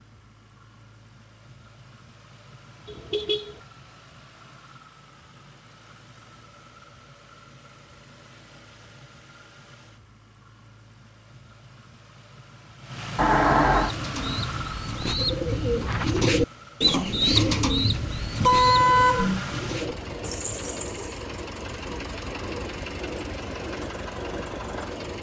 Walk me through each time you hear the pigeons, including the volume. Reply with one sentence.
The pigeons can be heard from 13.7 to 21.2 s, getting louder then quieter.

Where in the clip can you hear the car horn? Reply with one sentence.
You can hear the car horn from 2.9 to 3.6 s, from 13.2 to 13.9 s and from 18.4 to 19.4 s.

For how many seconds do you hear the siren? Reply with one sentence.
You can't hear the siren here.